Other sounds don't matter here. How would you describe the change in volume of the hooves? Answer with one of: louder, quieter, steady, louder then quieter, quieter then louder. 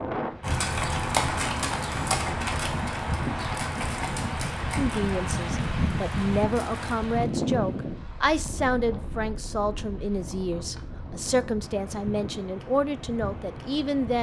quieter.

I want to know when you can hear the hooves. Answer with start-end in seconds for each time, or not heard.
0.4-7.0.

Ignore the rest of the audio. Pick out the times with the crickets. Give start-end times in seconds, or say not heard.
not heard.